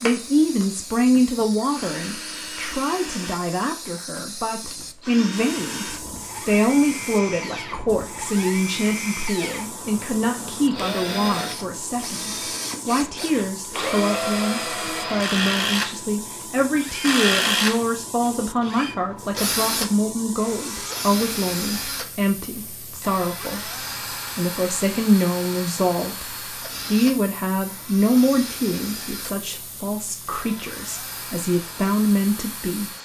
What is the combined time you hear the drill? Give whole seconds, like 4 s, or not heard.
33 s.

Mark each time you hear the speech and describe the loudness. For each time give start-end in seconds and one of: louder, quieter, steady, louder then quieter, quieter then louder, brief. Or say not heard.
0.0-23.7 steady
24.4-32.9 quieter then louder.